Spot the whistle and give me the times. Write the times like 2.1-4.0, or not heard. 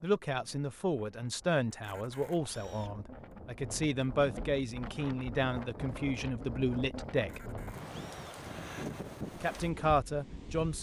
not heard.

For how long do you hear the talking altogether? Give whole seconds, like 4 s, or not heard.
9 s.